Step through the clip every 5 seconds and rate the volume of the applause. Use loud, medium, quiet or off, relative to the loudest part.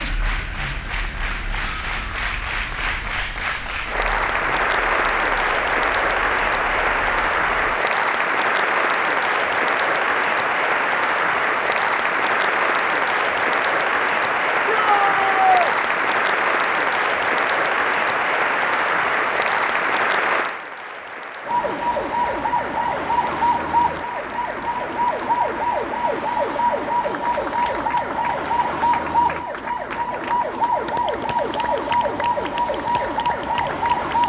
medium, loud, loud, loud, medium, quiet, quiet.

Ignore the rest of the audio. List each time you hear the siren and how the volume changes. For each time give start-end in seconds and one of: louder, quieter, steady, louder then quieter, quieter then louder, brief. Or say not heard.
0.0-7.8 quieter
21.4-34.2 steady.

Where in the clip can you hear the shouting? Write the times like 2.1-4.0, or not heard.
14.7-15.8.